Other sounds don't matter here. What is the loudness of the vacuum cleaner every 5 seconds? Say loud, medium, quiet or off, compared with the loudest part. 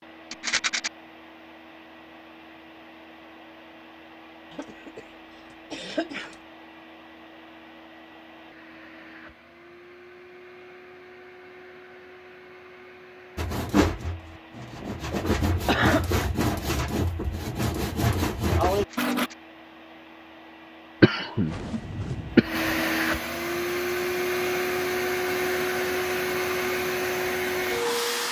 quiet, quiet, quiet, quiet, loud, loud.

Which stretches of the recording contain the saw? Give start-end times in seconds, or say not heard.
13.3-19.3.